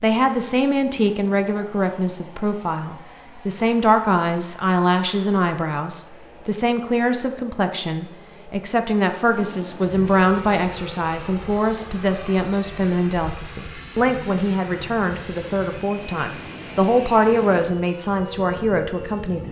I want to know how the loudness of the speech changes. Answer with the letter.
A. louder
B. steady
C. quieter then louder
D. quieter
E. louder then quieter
B.